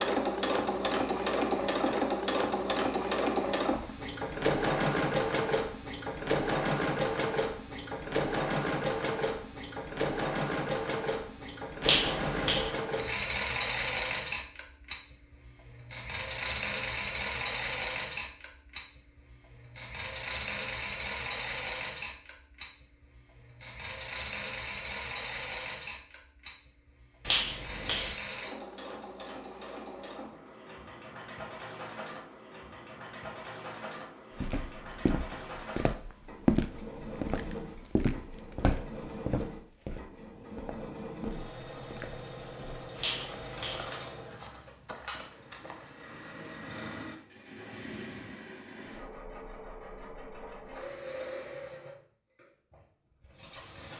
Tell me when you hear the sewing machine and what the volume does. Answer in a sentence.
The sewing machine can be heard from 0.0 to 53.9 s, getting quieter.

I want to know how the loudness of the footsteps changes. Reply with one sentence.
The volume of the footsteps goes down.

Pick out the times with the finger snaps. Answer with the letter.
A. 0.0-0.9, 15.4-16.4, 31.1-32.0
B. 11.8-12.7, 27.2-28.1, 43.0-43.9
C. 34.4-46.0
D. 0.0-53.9
B.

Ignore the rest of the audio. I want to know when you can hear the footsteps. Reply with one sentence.
You can hear the footsteps from 34.4 to 46.0 s.